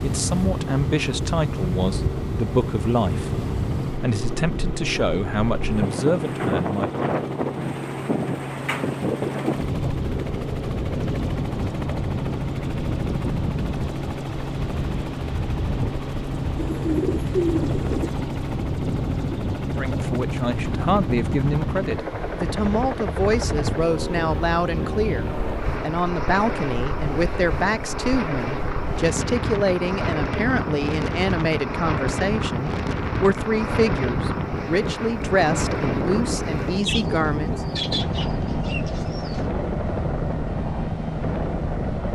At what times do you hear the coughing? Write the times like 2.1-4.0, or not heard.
not heard.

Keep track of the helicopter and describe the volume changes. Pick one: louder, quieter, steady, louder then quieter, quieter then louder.
steady.